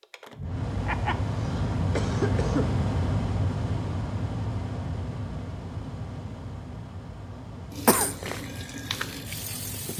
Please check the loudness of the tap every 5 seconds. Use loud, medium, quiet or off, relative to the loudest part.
off, loud.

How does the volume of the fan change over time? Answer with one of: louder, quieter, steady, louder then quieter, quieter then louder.
quieter.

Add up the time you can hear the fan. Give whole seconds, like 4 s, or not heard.
10 s.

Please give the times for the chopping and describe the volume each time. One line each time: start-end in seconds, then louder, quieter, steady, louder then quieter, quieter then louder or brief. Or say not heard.
not heard.